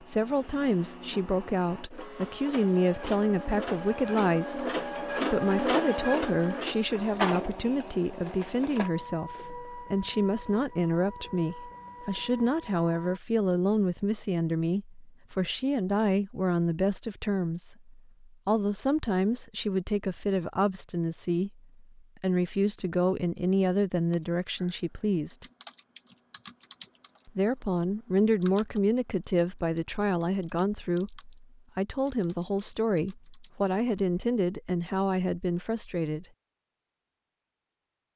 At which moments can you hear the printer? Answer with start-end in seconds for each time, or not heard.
0.0-13.2.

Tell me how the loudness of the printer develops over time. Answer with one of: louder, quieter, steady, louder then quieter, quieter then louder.
louder then quieter.